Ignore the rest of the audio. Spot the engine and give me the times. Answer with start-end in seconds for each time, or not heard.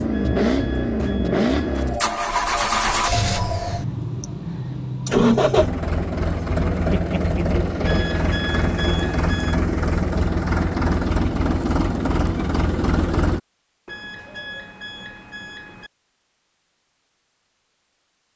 0.0-13.4.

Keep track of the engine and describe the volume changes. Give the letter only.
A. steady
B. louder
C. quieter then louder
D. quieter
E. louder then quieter
A.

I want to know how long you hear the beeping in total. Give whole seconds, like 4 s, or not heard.
6 s.